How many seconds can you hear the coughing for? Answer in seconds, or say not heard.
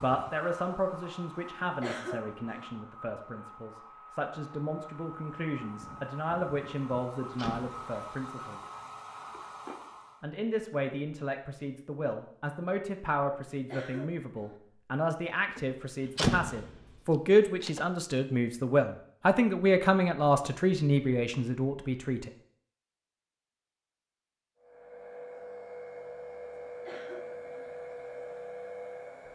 3 s.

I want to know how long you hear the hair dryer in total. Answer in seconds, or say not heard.
15 s.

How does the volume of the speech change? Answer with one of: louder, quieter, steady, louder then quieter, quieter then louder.
louder.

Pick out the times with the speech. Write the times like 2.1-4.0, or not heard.
0.0-8.6, 10.2-22.3.